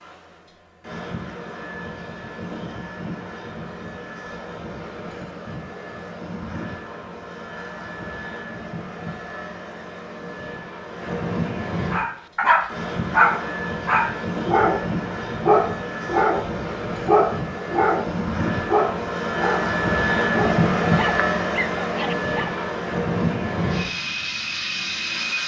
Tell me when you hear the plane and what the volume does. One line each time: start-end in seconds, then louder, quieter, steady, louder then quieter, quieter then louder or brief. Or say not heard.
0.0-25.4 louder.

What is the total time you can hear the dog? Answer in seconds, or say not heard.
11 s.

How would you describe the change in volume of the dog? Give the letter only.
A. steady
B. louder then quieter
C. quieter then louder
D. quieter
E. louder
D.